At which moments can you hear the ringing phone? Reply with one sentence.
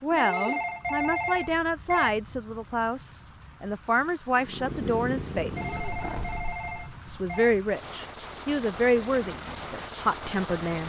The ringing phone can be heard from 0.1 to 2.1 s and from 5.5 to 7.5 s.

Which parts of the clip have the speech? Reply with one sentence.
You can hear the speech from 0.0 to 5.8 s and from 7.0 to 10.8 s.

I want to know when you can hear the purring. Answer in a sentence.
You can hear the purring from 4.3 to 7.0 s.